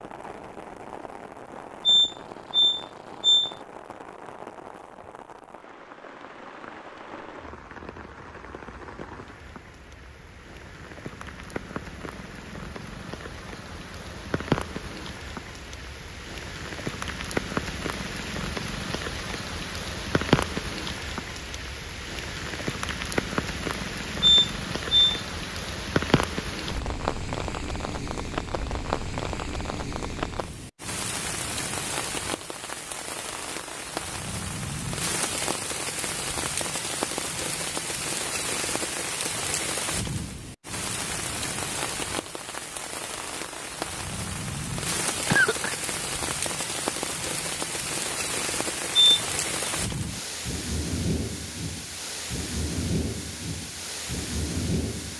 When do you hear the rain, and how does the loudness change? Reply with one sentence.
The rain can be heard from 0.0 to 55.1 s, getting louder.